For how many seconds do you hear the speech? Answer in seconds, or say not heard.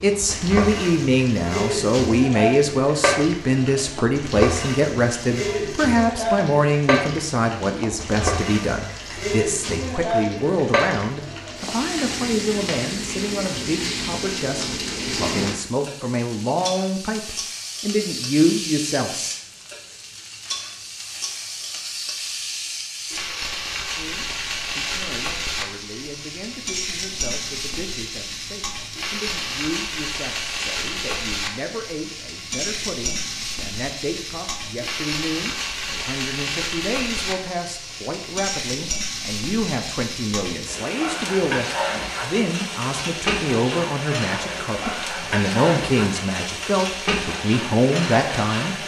44 s.